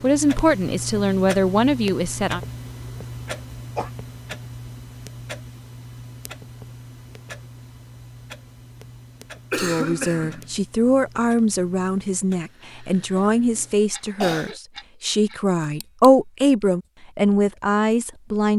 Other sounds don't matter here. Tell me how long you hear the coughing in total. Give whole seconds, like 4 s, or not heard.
3 s.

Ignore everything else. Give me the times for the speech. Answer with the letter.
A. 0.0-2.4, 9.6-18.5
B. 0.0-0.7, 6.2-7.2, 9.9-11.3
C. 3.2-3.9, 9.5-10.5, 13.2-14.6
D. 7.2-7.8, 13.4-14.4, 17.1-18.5
A.